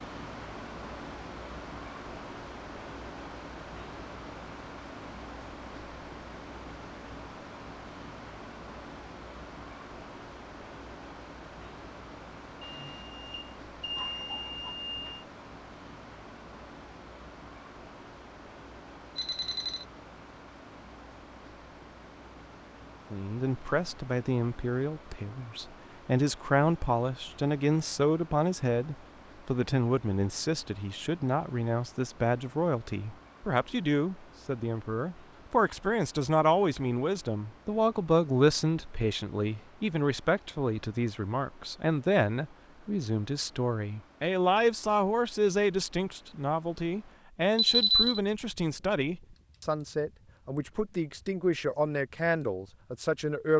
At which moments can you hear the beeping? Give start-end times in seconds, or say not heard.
12.6-15.2, 19.1-19.9, 47.5-48.2.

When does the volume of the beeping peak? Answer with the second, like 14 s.
48 s.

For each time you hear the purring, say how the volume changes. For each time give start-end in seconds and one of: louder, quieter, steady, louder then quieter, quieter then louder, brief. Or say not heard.
not heard.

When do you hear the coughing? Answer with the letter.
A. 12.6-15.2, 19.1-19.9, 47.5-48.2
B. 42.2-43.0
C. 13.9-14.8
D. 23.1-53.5
C.